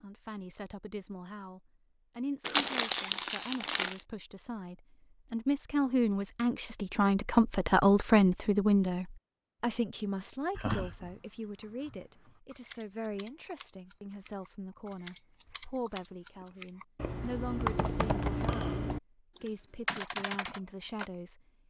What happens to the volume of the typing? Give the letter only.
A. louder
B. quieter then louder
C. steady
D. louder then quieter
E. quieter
A.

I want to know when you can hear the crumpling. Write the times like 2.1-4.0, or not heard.
2.5-4.0.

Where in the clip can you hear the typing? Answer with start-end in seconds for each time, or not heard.
10.5-21.1.